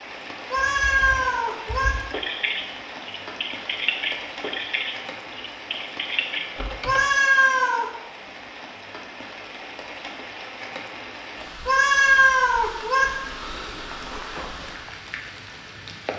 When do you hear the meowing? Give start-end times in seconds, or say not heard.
0.5-1.9, 6.8-7.8, 11.7-13.1.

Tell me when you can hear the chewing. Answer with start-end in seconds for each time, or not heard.
not heard.